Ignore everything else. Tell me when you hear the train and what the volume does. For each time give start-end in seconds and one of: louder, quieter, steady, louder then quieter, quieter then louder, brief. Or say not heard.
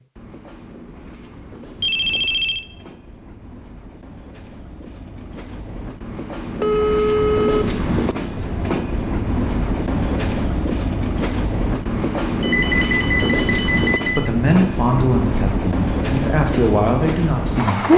0.0-17.9 louder.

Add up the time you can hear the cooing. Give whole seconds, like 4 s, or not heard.
not heard.